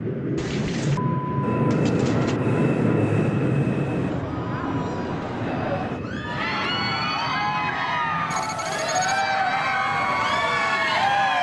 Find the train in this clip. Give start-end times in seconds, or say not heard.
0.0-11.3.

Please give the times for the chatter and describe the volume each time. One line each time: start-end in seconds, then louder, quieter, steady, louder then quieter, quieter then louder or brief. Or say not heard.
3.7-11.3 louder.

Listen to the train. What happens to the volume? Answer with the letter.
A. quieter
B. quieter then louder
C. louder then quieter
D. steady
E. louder
A.